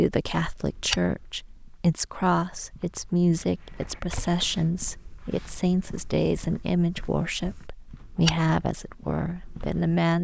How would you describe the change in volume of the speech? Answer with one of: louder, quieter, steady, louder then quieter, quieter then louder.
steady.